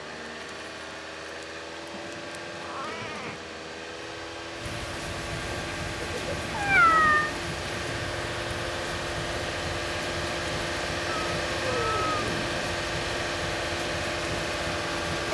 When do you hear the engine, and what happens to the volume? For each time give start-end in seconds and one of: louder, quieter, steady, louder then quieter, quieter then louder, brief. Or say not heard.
0.0-15.3 louder.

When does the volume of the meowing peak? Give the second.
7 s.